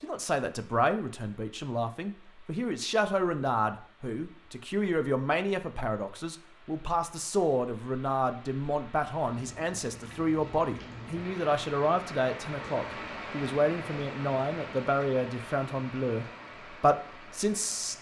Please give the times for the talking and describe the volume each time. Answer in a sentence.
The talking can be heard from 0.0 to 17.9 s, at a steady volume.